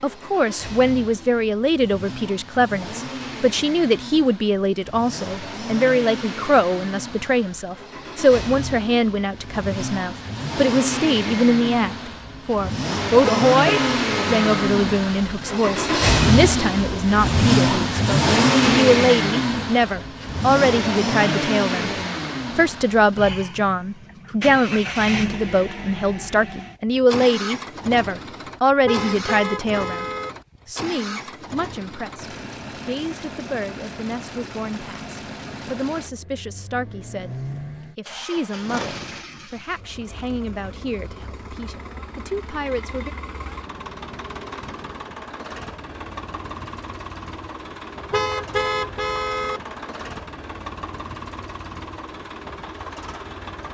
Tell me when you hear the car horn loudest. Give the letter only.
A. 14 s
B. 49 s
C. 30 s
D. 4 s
B.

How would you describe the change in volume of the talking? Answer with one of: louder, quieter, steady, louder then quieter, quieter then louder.
quieter.